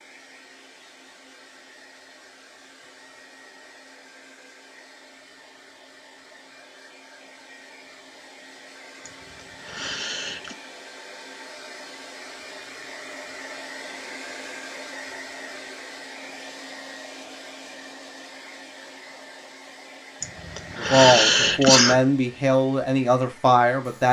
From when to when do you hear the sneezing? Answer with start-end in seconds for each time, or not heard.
9.1-10.6, 20.2-22.0.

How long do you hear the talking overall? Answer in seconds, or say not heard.
3 s.